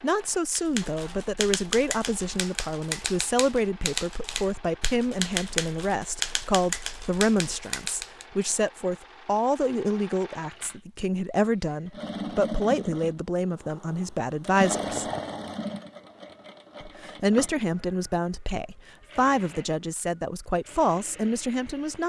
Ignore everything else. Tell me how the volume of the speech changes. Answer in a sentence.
The volume of the speech stays about the same.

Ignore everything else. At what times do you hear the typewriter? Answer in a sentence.
You can hear the typewriter from 0.6 to 8.2 s.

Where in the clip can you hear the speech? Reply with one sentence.
You can hear the speech from 0.0 to 15.1 s and from 16.8 to 22.0 s.